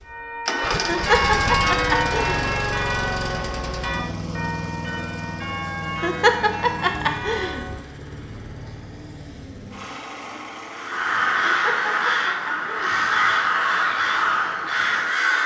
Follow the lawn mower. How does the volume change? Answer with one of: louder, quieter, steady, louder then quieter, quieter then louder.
quieter.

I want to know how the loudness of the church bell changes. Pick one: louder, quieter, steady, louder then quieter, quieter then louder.
quieter.